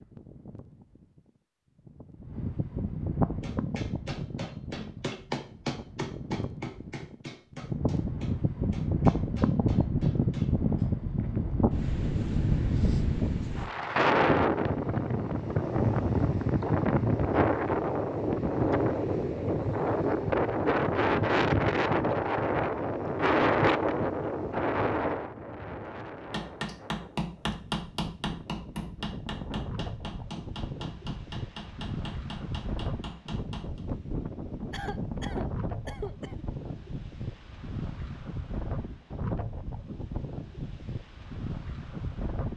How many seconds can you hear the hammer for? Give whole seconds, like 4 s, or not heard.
15 s.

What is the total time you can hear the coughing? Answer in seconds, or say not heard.
2 s.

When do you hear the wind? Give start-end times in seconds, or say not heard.
0.0-42.5.